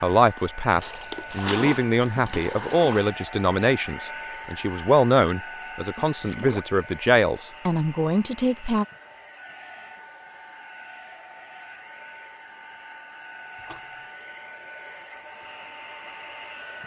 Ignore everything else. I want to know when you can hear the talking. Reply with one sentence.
The talking can be heard from 0.0 to 8.8 s.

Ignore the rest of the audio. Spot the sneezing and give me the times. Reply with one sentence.
The sneezing can't be heard in this clip.